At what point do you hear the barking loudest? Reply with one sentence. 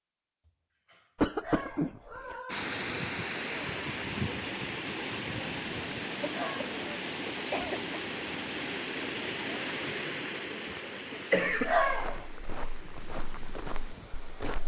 The loudest moment of the barking is at 12 seconds.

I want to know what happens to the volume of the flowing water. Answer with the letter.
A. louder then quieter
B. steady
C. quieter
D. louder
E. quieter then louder
C.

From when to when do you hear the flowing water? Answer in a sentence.
You can hear the flowing water from 2.5 to 14.6 s.